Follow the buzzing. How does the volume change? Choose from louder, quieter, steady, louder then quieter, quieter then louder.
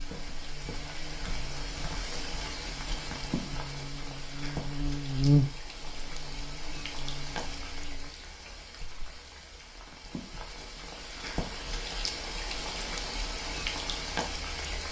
louder then quieter.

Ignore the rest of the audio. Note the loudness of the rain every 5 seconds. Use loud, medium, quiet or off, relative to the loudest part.
loud, medium, loud.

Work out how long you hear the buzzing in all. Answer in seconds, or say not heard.
8 s.